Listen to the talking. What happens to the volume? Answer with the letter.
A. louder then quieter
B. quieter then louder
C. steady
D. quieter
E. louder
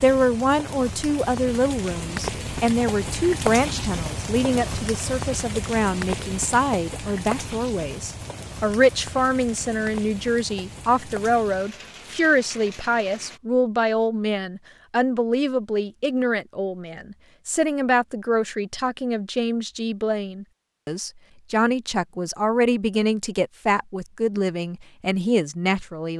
C.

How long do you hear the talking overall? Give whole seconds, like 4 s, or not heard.
26 s.